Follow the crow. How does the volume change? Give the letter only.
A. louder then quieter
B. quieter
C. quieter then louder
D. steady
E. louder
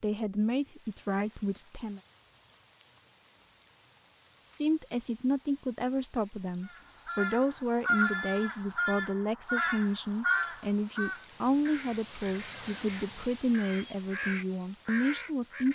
C.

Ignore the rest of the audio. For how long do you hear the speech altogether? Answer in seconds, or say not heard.
13 s.